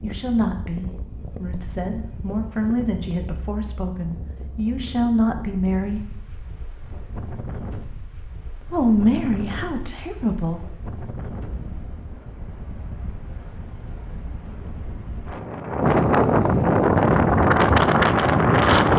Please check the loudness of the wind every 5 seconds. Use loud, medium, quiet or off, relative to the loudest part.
quiet, quiet, quiet, loud.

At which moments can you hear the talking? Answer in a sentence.
The talking can be heard from 0.0 to 6.0 s and from 8.6 to 10.6 s.